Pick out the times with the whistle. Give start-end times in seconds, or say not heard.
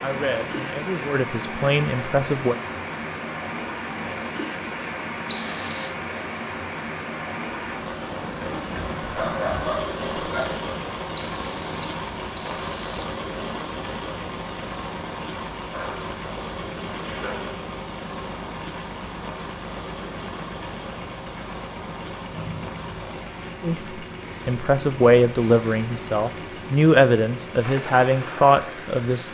5.2-5.9, 11.2-13.1, 22.3-23.1.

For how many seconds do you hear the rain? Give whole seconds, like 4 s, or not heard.
29 s.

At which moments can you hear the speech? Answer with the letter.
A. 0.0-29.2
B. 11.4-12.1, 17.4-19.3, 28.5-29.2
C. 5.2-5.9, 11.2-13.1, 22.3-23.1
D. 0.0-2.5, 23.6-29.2
D.